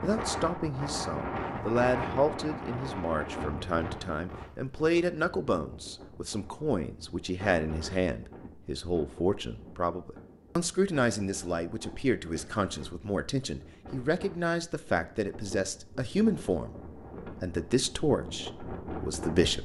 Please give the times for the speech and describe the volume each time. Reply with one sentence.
You can hear the speech from 0.0 to 19.5 s, at a steady volume.